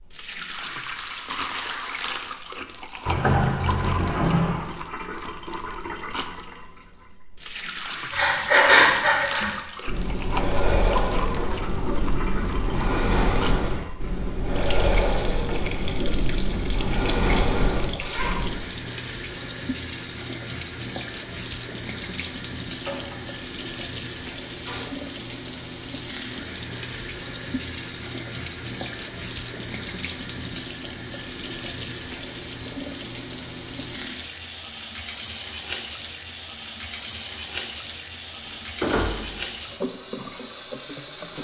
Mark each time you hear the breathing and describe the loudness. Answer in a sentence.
The breathing can be heard from 8.1 to 18.6 s, getting quieter.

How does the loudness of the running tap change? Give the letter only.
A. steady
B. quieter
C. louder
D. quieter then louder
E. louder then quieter
A.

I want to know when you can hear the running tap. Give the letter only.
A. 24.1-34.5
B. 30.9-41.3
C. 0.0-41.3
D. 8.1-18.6
C.